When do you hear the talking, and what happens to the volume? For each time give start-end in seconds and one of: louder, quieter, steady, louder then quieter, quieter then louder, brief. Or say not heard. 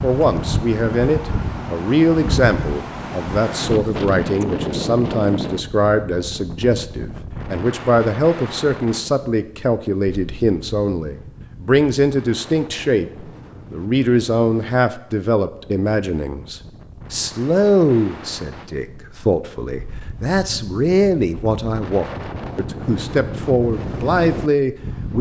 0.0-25.1 steady.